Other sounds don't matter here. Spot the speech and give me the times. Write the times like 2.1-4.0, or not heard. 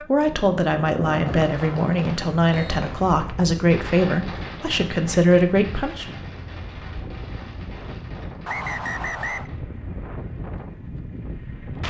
0.0-6.2.